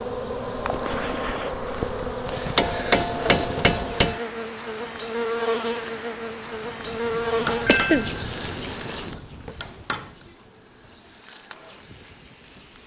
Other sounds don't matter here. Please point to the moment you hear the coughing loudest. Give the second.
8 s.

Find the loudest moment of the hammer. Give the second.
3 s.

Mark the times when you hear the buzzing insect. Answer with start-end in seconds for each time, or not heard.
0.0-12.8.